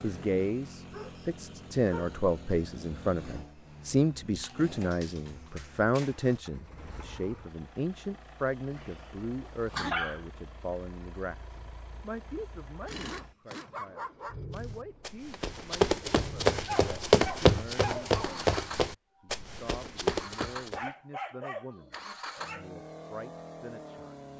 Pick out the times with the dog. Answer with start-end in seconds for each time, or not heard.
0.9-2.1, 4.4-6.4, 8.7-10.2, 12.4-14.3, 16.6-18.4, 20.7-22.7.